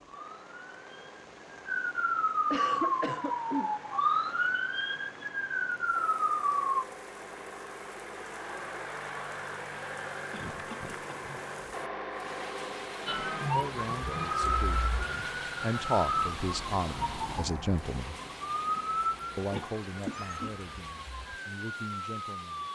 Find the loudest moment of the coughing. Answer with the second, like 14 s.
3 s.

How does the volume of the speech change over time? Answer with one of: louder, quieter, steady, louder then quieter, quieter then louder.
louder then quieter.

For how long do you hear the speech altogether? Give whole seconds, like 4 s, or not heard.
8 s.